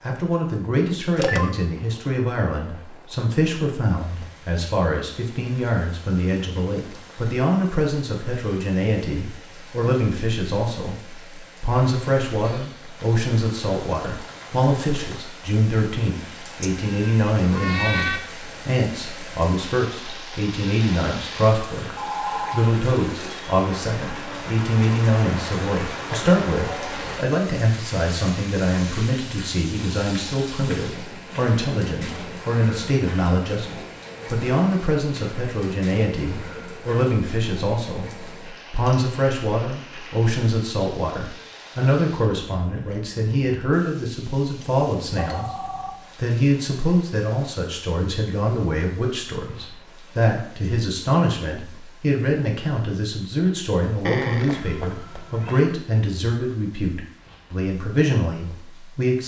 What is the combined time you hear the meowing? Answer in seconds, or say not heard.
3 s.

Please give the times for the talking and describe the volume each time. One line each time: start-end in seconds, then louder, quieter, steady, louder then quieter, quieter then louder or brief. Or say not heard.
0.0-45.5 steady
46.1-59.2 steady.